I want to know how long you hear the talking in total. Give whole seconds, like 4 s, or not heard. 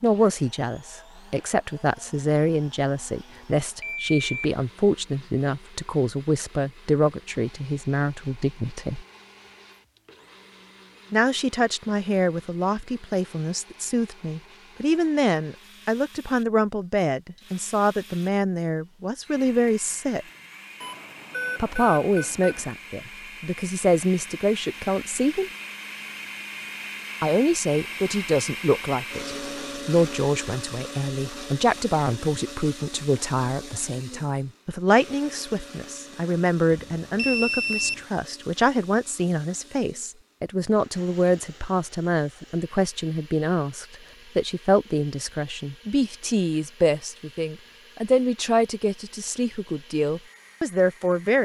46 s.